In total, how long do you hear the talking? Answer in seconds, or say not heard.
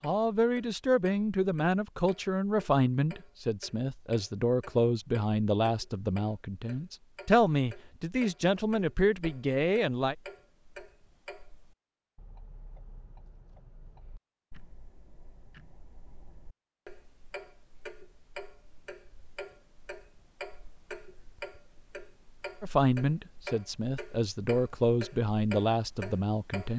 14 s.